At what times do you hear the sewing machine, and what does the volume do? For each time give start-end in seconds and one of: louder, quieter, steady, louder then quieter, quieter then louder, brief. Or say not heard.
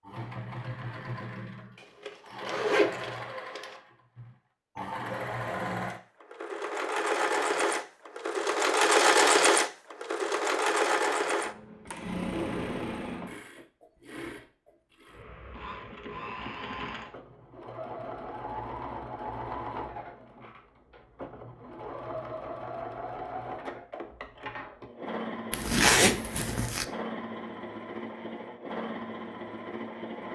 0.0-30.2 louder then quieter.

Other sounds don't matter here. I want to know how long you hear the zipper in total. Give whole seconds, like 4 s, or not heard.
3 s.